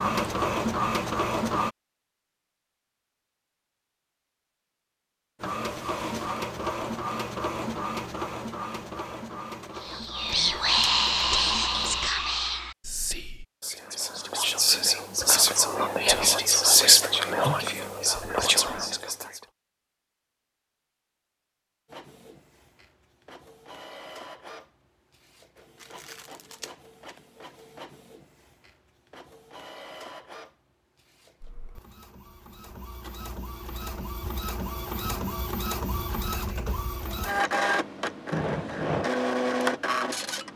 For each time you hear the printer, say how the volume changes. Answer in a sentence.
The printer can be heard briefly from 0.0 to 1.7 s; from 5.4 to 12.1 s, getting quieter; and from 21.9 to 40.5 s, getting louder.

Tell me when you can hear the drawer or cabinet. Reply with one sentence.
The drawer or cabinet can be heard from 38.3 to 39.1 s.